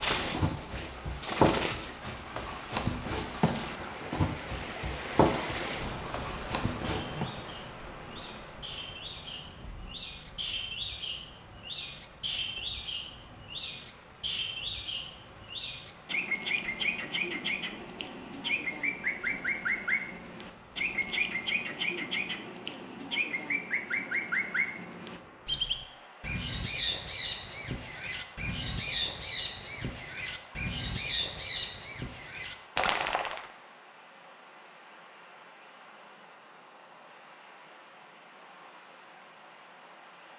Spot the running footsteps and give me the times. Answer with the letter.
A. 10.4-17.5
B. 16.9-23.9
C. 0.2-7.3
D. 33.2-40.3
C.